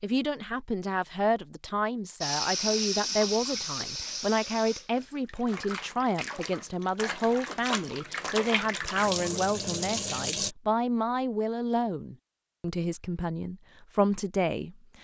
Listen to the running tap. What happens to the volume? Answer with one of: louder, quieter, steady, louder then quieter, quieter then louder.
quieter then louder.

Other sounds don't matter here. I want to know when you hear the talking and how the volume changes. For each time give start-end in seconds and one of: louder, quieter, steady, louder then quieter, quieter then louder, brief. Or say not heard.
0.0-14.9 steady.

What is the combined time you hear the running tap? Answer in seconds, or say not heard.
8 s.